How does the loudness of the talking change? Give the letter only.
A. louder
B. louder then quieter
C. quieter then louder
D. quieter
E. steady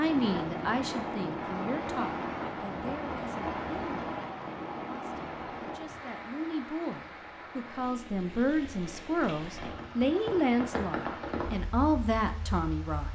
C.